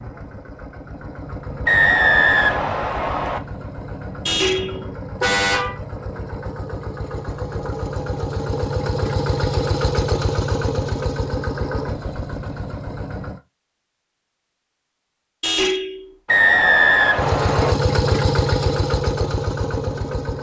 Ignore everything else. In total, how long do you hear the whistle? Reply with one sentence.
You can hear the whistle for 3 seconds altogether.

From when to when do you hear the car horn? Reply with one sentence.
The car horn can be heard from 4.2 to 5.8 s and from 15.4 to 16.1 s.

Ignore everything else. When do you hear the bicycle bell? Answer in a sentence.
The bicycle bell can't be heard in this clip.